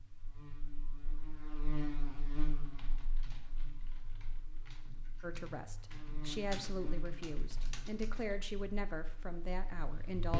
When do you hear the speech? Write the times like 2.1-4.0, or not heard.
5.2-10.3.